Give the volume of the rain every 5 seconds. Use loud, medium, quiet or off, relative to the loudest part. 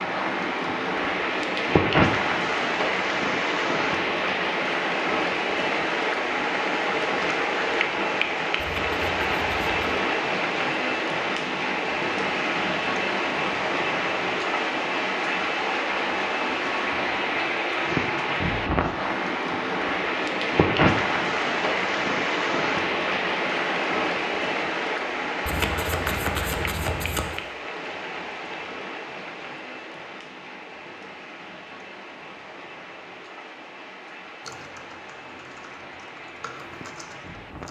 loud, loud, loud, loud, loud, medium, quiet, quiet.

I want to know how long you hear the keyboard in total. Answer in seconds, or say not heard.
3 s.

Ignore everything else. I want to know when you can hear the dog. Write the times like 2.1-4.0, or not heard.
not heard.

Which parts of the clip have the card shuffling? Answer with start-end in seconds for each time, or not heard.
8.6-10.0, 25.4-27.4.